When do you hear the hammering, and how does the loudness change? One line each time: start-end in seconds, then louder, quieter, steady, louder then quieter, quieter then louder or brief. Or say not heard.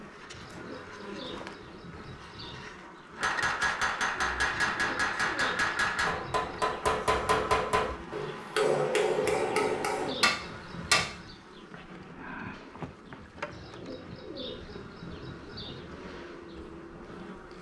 3.1-11.1 steady.